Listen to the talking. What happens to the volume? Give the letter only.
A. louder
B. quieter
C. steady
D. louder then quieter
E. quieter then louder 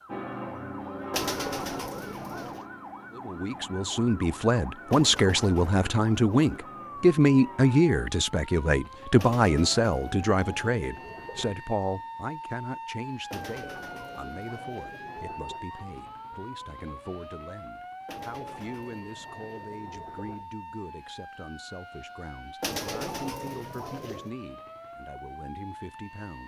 B.